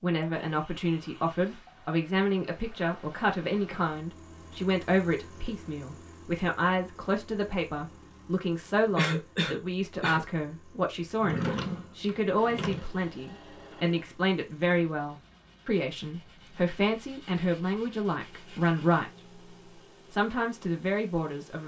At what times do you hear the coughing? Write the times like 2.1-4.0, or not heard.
8.9-10.2.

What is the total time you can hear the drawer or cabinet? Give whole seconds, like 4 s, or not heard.
2 s.